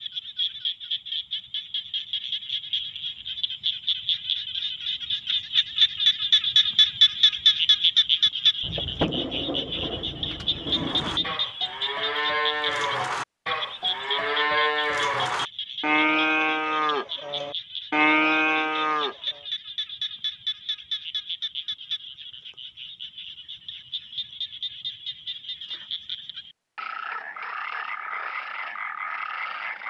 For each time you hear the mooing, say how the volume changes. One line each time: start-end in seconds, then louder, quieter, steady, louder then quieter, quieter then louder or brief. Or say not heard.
10.7-19.1 louder.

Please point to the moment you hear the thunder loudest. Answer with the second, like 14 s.
9 s.